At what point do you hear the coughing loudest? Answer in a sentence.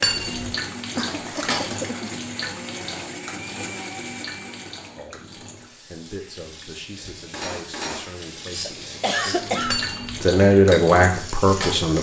The loudest moment of the coughing is at 9 seconds.